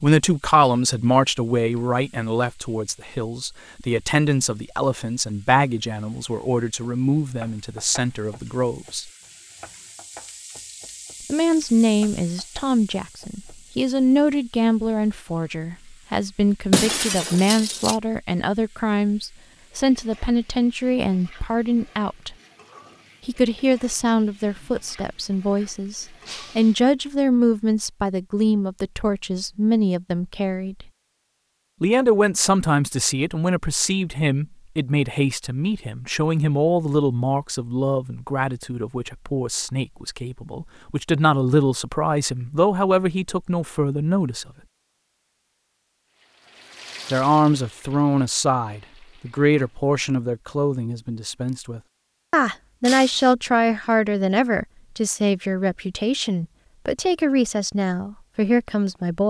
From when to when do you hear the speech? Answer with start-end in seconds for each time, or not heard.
0.0-9.1, 11.2-22.4, 23.2-30.9, 31.8-44.5, 47.1-59.2.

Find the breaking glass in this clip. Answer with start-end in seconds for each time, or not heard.
16.7-17.9, 26.2-26.8, 52.9-53.4.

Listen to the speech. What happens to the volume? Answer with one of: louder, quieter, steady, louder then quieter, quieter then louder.
steady.